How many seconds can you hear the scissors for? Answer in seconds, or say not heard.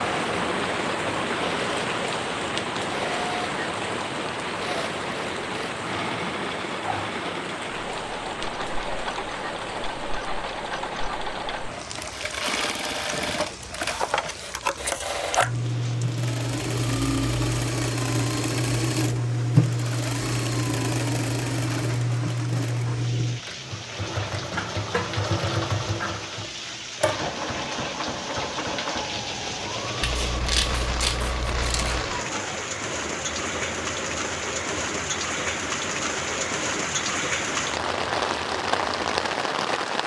2 s.